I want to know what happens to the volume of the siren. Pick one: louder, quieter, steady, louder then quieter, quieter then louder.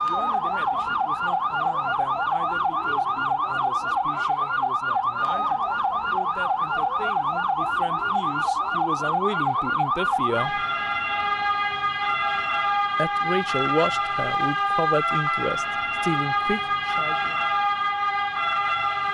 steady.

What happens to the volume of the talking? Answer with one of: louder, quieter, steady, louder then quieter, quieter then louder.
louder.